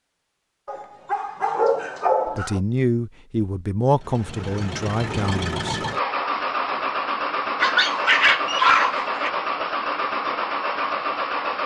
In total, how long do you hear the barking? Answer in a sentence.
The barking can be heard for 4 seconds in total.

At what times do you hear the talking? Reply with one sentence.
The talking can be heard from 2.2 to 5.8 s.